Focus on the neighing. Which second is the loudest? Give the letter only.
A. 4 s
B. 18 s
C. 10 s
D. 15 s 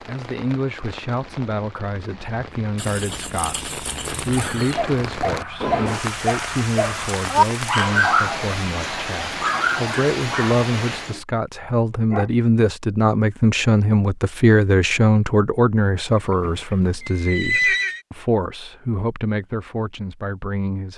B.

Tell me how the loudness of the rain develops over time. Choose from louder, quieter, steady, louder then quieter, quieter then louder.
louder.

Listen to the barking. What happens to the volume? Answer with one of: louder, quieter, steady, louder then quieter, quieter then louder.
louder then quieter.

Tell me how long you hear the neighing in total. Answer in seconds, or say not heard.
4 s.